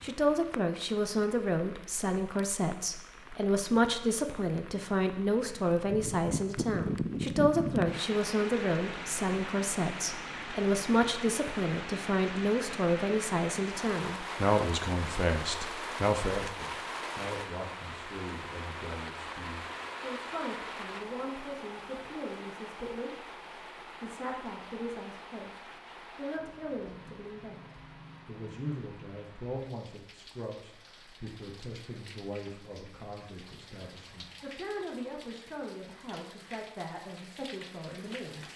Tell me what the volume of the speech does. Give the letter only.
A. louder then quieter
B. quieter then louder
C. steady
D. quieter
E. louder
D.